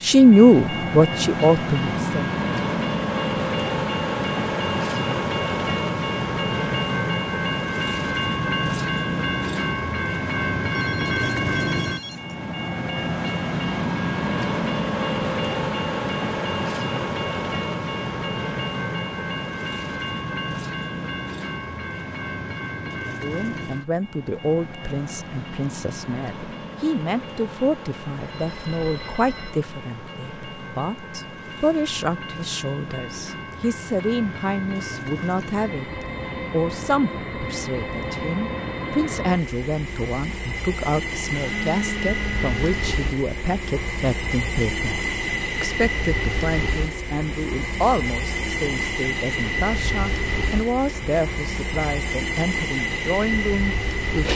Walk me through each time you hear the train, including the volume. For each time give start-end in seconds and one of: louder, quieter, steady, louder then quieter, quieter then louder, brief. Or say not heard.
0.0-54.3 quieter then louder.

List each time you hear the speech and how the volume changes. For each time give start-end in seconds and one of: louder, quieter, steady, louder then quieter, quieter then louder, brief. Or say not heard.
0.0-2.2 brief
23.2-54.3 steady.